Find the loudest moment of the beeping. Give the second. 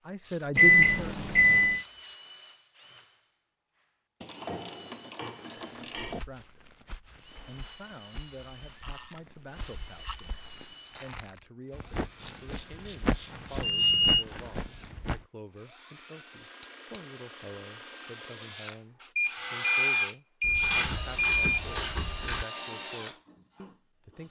1 s.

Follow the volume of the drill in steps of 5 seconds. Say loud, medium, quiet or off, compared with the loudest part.
quiet, quiet, quiet, medium, loud.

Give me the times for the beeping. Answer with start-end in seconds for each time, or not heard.
0.6-1.9, 13.6-14.2, 19.1-21.6.